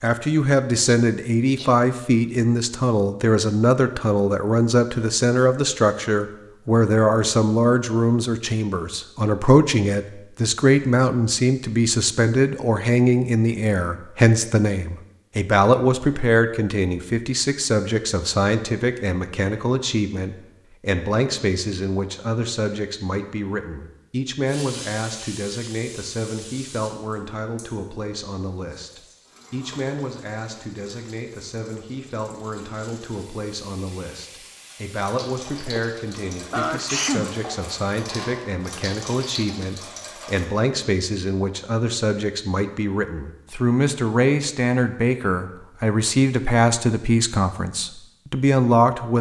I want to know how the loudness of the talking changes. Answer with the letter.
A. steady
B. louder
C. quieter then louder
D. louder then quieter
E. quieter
C.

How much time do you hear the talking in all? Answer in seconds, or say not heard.
49 s.